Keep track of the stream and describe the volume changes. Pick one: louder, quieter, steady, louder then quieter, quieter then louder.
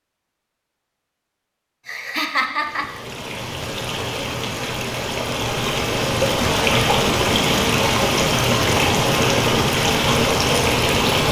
louder.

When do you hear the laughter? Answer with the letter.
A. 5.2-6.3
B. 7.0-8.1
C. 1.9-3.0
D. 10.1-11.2
C.